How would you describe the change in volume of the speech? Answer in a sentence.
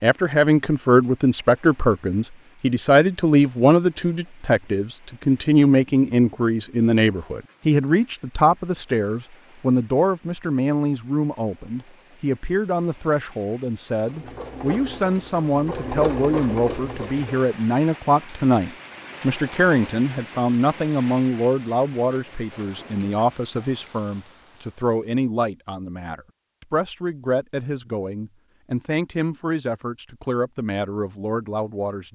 The volume of the speech goes down.